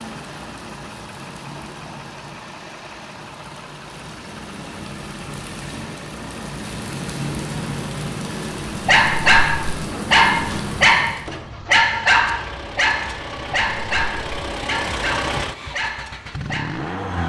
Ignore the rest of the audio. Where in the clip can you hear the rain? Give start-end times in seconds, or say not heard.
0.0-11.2.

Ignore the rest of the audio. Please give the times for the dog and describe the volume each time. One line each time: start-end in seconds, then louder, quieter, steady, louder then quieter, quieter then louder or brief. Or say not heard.
8.7-16.8 quieter.